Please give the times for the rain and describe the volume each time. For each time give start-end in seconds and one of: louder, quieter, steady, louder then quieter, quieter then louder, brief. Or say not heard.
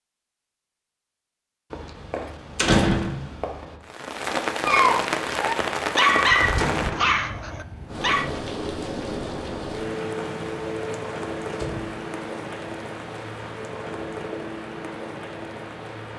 3.8-16.1 quieter.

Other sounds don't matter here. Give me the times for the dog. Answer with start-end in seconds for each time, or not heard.
4.7-8.3.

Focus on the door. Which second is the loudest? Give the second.
3 s.